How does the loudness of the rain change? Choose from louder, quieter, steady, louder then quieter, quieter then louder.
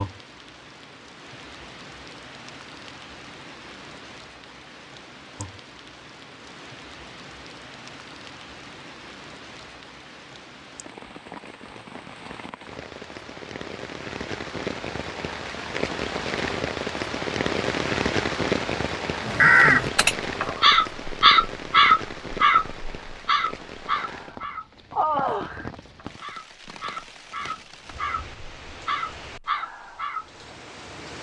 louder then quieter.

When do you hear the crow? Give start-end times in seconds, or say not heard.
19.2-30.2.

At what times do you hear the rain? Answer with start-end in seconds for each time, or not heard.
0.0-31.1.